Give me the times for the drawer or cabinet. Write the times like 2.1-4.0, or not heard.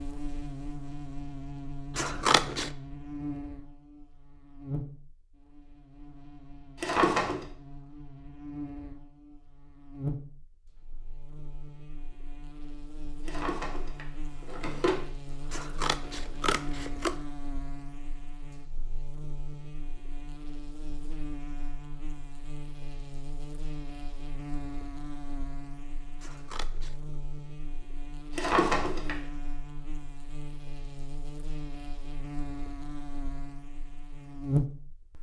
6.8-7.5, 13.2-15.1, 28.4-29.1.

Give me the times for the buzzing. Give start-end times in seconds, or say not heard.
0.0-35.1.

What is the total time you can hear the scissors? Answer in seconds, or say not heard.
3 s.